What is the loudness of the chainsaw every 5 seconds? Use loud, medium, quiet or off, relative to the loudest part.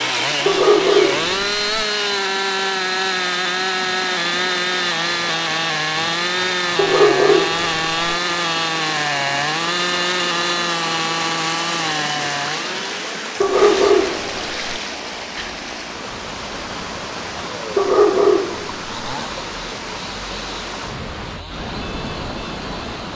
loud, loud, loud, quiet, quiet.